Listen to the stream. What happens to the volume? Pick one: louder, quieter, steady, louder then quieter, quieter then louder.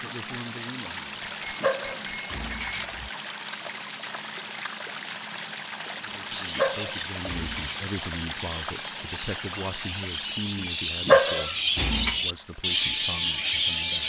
quieter.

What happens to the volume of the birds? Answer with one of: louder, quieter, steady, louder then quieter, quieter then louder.
louder.